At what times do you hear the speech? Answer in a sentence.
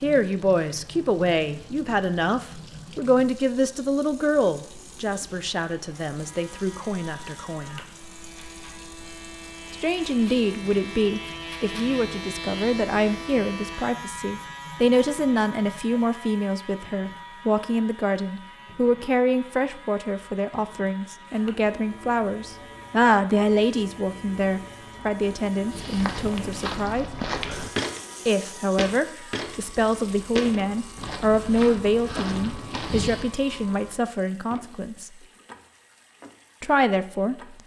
You can hear the speech from 0.0 to 7.8 s, from 9.7 to 27.1 s, from 28.2 to 35.1 s and from 36.6 to 37.5 s.